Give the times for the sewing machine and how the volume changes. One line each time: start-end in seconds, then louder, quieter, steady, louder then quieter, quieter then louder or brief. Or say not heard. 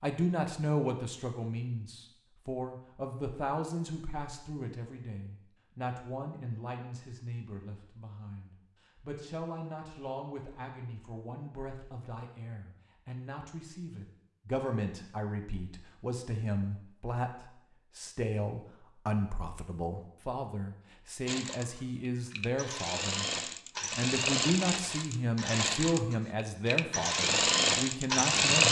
21.2-28.6 louder.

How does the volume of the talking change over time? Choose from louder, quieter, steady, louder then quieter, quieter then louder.
quieter then louder.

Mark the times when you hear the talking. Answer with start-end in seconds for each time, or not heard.
0.0-23.2, 23.9-28.6.